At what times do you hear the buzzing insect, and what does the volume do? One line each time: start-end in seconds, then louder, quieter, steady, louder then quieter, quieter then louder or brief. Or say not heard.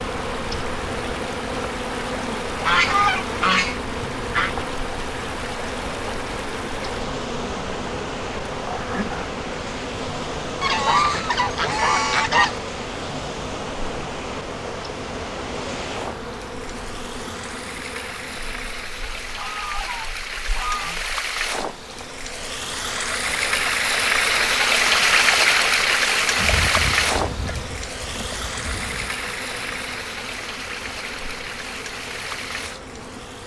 0.0-33.4 quieter.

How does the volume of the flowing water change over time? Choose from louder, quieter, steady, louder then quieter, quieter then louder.
louder then quieter.